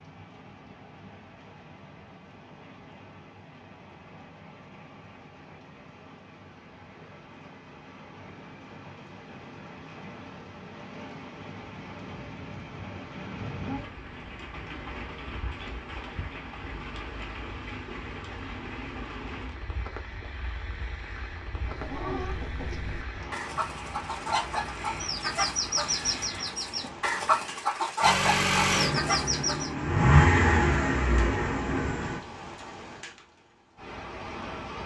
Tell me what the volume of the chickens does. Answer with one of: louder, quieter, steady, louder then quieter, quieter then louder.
louder.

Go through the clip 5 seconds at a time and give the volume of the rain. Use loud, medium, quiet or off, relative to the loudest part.
medium, medium, loud, loud, loud, loud, loud.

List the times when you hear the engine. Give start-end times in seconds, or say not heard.
28.0-32.2.